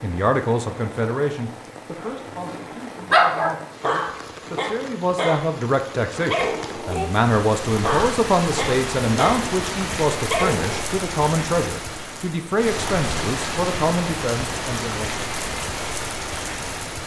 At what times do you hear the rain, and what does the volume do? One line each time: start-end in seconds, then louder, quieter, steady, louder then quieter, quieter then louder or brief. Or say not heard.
0.0-17.0 louder.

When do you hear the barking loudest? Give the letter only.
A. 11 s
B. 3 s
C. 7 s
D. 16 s
B.